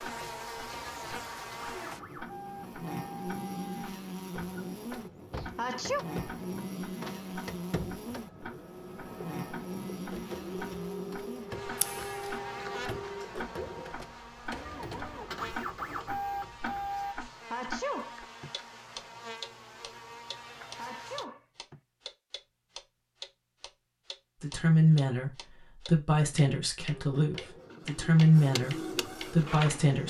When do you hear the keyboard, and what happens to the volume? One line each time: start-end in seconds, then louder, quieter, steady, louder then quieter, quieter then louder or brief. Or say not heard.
not heard.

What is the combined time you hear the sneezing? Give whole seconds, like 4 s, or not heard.
3 s.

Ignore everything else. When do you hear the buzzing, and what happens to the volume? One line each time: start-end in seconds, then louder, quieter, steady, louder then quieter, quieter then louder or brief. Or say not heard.
0.0-21.2 quieter.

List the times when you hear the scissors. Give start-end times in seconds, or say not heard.
11.8-12.3.